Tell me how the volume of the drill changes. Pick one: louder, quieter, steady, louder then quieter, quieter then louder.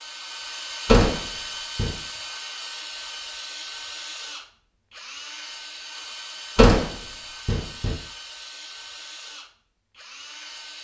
quieter.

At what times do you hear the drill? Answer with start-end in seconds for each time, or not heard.
0.0-10.8.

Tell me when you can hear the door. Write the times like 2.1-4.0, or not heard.
0.8-1.9, 6.5-8.0.